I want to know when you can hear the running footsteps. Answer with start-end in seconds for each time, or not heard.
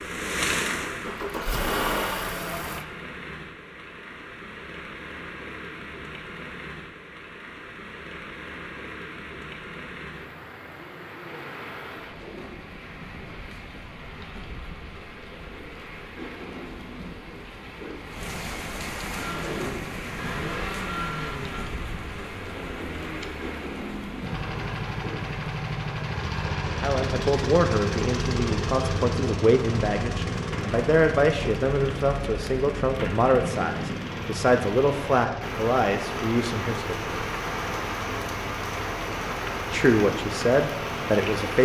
not heard.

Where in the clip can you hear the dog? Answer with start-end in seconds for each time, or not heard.
not heard.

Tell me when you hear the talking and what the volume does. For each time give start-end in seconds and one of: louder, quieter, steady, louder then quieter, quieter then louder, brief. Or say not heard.
26.6-37.1 steady
39.7-41.6 brief.